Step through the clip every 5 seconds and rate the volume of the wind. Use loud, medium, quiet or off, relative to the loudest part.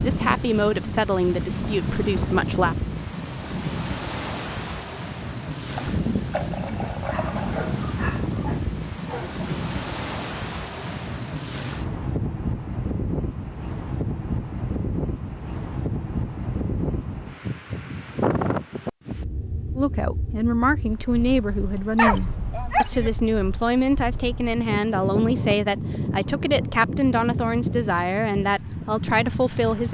loud, loud, loud, loud, medium, loud.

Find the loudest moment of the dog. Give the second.
22 s.